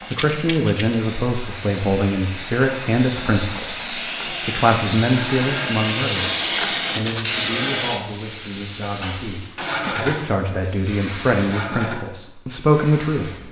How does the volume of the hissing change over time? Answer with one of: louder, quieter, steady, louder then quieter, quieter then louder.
louder then quieter.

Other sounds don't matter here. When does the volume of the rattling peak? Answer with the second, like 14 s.
7 s.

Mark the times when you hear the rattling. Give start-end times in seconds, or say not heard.
0.1-0.9, 6.9-7.5.